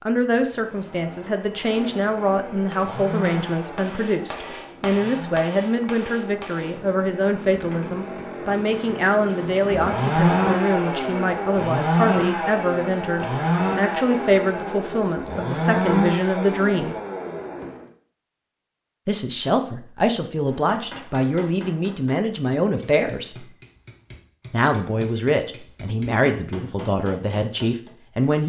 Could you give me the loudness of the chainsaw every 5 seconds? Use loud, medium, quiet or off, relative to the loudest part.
quiet, medium, loud, loud, off, off.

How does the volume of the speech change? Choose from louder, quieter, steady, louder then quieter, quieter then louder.
steady.